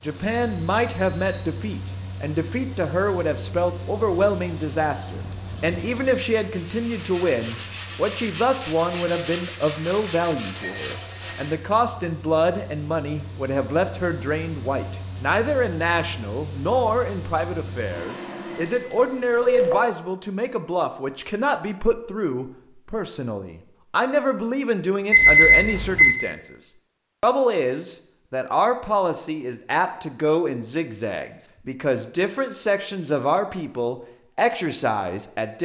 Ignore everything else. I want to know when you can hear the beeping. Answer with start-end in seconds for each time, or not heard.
0.5-1.4, 18.5-19.8, 25.1-26.1.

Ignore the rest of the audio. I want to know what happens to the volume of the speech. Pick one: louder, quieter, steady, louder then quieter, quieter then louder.
steady.